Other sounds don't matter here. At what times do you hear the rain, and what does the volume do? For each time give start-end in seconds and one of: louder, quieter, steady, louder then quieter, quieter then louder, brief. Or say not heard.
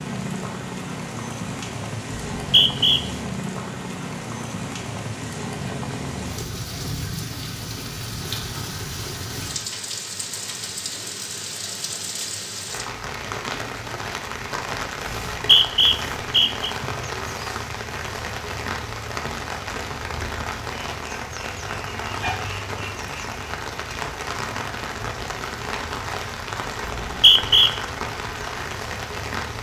0.0-29.5 steady.